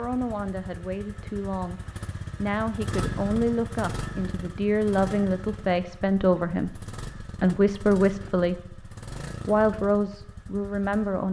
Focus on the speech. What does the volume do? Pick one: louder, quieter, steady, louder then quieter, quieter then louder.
louder.